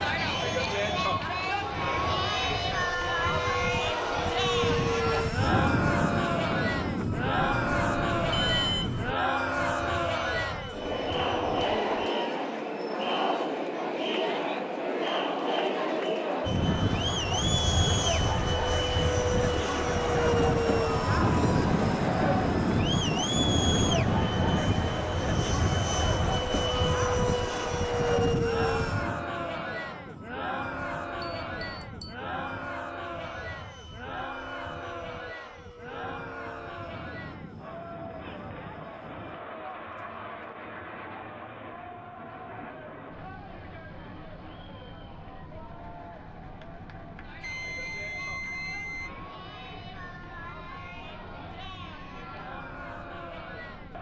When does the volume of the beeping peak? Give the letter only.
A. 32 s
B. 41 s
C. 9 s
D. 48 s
C.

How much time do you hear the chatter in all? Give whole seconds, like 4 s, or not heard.
54 s.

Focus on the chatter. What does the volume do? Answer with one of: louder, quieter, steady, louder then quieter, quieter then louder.
quieter.